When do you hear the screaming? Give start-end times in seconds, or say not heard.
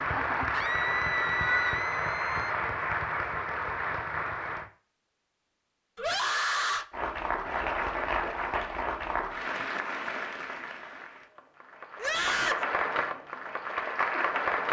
0.5-2.5, 6.0-6.8, 11.9-12.7.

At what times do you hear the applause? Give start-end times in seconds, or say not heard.
0.0-4.7, 6.9-14.6.